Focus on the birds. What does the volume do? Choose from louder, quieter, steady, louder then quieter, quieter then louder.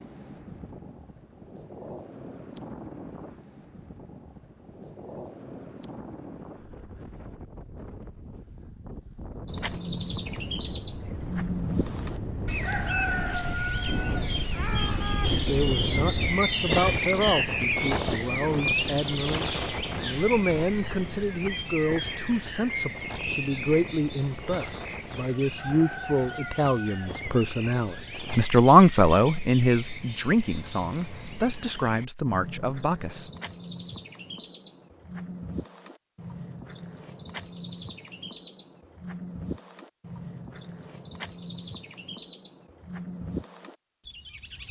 quieter.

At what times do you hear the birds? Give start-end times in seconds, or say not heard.
9.4-44.6.